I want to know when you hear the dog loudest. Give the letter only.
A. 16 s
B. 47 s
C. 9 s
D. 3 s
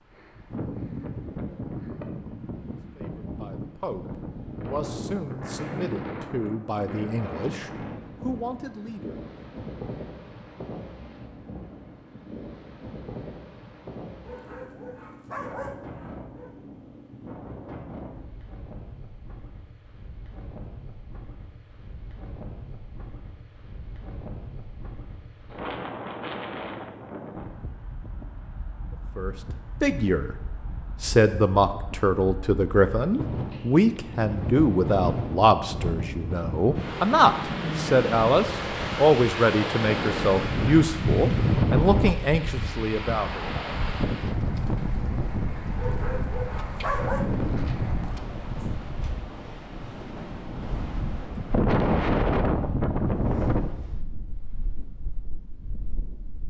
B.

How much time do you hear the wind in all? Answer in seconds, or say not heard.
56 s.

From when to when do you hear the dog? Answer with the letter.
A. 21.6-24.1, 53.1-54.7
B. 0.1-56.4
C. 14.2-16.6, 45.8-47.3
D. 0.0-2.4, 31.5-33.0
C.